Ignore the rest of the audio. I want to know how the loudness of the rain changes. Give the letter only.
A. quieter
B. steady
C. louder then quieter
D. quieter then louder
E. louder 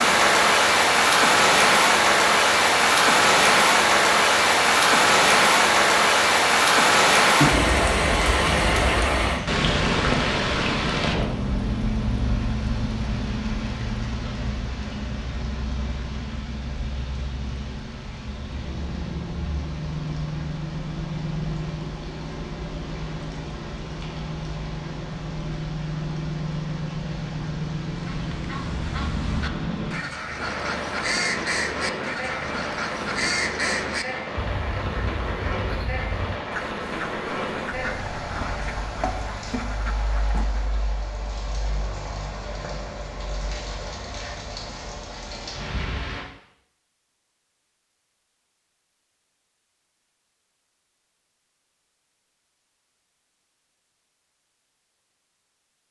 A.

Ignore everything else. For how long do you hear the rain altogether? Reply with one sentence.
The rain can be heard for 46 seconds in total.